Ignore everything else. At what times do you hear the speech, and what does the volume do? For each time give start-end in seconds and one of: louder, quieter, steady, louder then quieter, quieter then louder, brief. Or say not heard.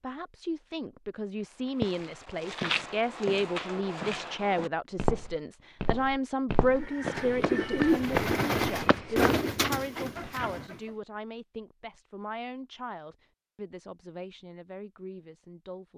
0.0-15.9 quieter.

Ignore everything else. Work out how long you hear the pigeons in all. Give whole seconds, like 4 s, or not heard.
4 s.